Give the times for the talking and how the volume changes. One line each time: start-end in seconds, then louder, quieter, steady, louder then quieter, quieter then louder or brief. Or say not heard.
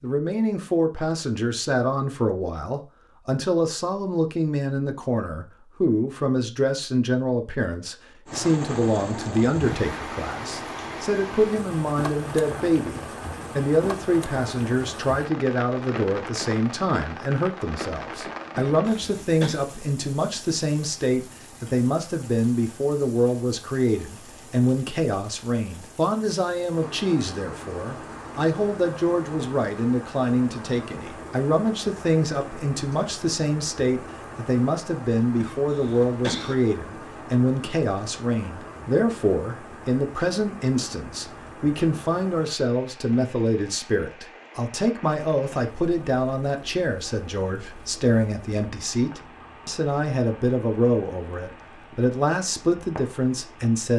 0.0-53.9 steady.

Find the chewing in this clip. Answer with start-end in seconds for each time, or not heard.
not heard.